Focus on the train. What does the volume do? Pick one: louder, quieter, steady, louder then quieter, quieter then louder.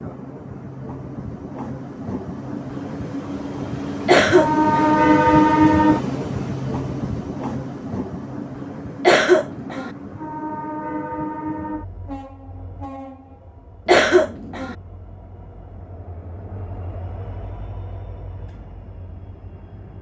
louder then quieter.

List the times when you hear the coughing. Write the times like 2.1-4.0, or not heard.
4.0-5.0, 9.0-9.9, 13.8-14.8.